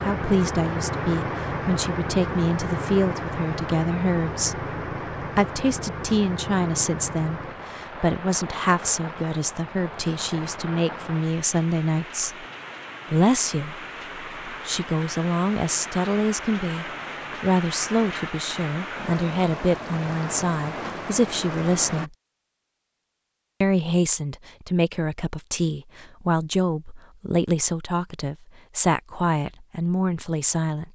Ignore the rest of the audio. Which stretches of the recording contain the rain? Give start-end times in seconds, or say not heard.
0.0-22.1.